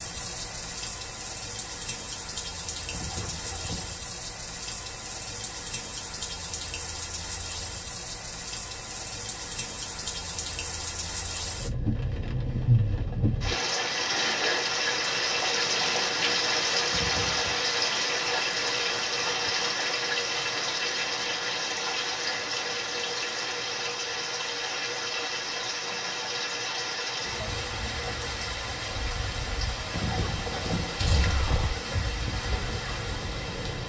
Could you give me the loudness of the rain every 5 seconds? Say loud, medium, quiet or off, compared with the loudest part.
medium, medium, loud, loud, loud, medium, medium.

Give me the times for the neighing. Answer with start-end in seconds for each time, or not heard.
2.9-4.0, 16.9-17.5, 29.9-31.8.